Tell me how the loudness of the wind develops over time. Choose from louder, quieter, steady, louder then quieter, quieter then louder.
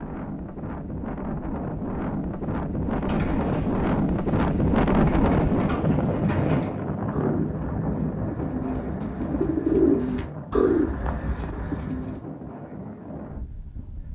louder then quieter.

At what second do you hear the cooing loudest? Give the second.
10 s.